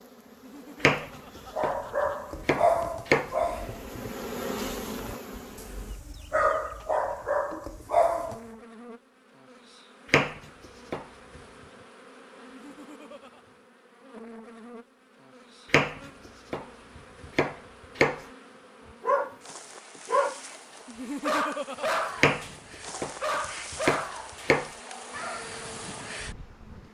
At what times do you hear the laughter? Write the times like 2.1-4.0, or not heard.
0.3-2.1, 12.4-13.4, 20.9-22.0.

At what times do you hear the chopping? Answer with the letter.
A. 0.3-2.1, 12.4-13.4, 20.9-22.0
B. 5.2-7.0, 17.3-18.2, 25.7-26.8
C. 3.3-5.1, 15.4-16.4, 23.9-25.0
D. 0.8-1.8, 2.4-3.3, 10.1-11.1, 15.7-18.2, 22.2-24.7
D.